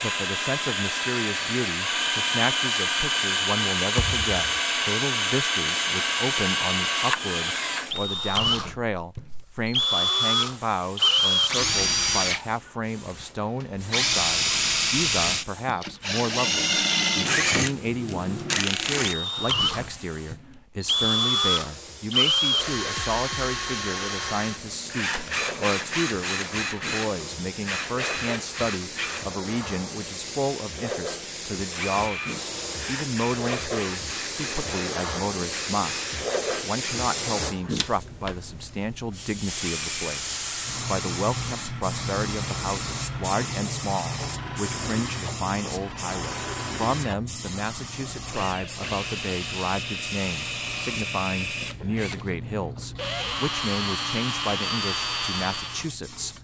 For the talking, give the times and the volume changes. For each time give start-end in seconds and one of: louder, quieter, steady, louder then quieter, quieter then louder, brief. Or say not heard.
0.0-56.3 steady.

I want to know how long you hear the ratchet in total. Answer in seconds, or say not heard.
not heard.